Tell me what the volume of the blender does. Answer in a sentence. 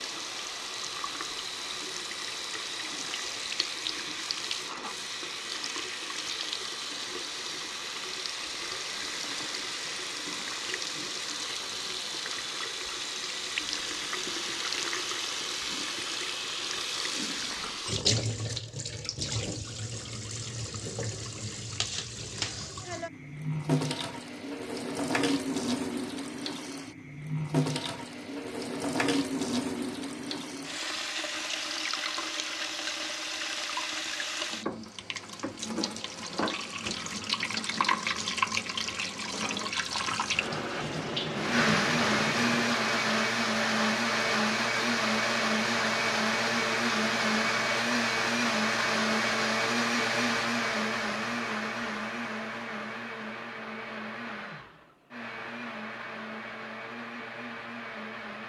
The volume of the blender goes down.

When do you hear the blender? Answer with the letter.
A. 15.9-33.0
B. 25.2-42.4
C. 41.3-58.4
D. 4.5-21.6
C.